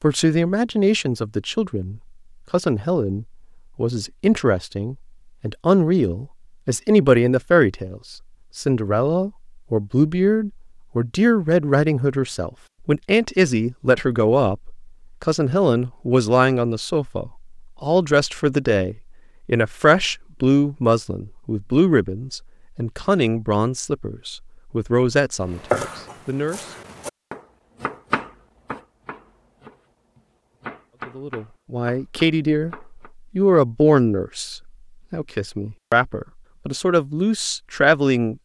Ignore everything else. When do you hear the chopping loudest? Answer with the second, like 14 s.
26 s.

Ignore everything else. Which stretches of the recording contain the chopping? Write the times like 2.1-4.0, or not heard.
25.4-33.1.